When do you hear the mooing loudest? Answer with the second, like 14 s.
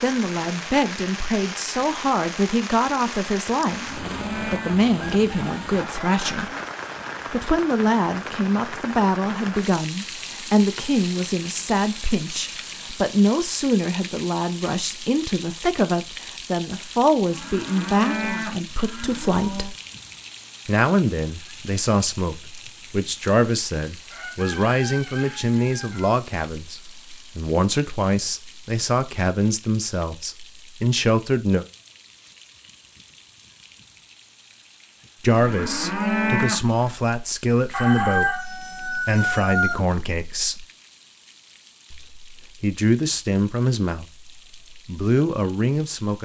36 s.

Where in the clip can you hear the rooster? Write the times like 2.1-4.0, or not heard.
5.0-6.7, 24.1-26.1, 37.7-39.8.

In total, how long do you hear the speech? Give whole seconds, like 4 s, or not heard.
40 s.